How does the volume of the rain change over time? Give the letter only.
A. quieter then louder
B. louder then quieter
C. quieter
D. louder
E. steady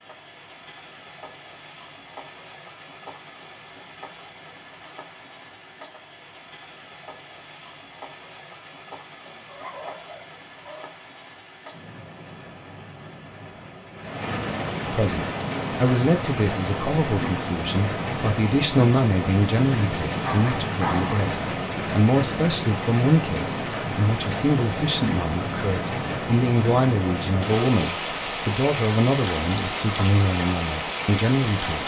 D.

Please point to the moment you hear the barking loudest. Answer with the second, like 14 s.
21 s.